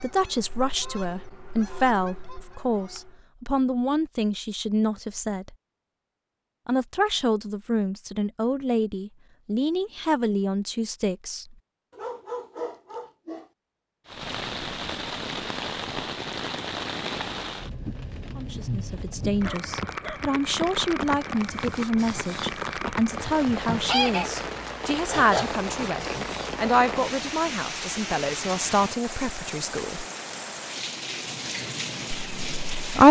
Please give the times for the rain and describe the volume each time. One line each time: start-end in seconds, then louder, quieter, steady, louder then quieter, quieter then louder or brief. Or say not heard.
14.1-33.0 steady.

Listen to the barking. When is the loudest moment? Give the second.
12 s.